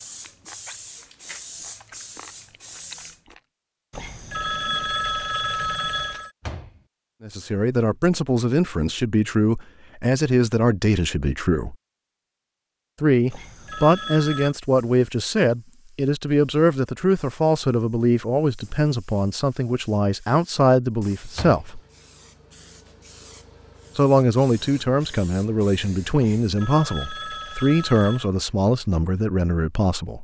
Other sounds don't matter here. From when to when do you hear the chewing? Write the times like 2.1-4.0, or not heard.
0.0-3.4.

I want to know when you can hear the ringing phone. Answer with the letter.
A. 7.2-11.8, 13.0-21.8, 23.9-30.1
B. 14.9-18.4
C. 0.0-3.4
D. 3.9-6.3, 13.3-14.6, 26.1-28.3
D.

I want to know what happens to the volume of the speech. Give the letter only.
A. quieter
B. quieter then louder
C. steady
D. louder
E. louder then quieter
C.